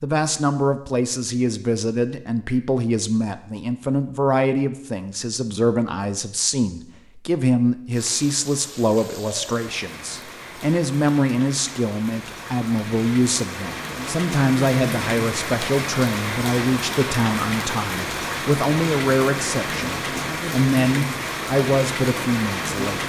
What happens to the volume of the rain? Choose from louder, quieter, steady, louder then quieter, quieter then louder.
louder.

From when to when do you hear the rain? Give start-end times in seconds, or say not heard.
7.9-23.0.